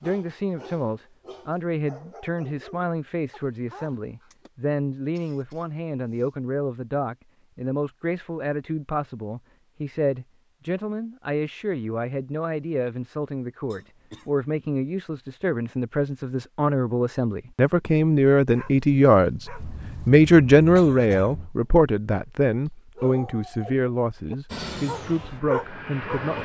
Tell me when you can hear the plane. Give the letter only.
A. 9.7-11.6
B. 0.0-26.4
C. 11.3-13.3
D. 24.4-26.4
D.